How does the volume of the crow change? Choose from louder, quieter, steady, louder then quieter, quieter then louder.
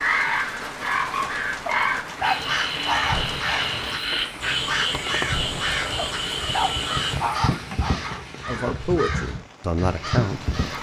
steady.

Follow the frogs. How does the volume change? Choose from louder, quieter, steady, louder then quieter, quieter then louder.
steady.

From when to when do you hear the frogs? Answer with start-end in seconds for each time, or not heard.
0.0-7.2.